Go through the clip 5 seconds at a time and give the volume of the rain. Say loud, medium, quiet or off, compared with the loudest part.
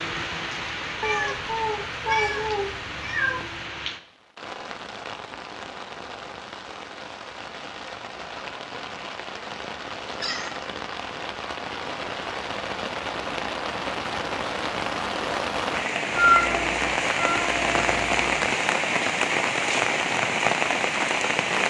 medium, quiet, medium, loud, loud.